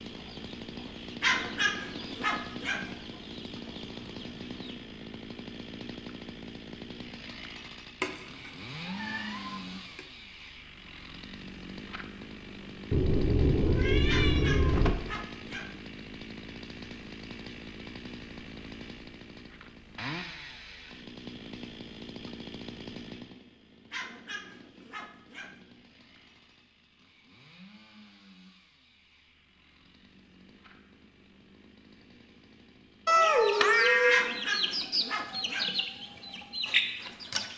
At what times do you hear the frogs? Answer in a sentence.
The frogs can't be heard in this clip.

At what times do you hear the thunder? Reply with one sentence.
The thunder can't be heard in this clip.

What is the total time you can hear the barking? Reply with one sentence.
You can hear the barking for 7 seconds altogether.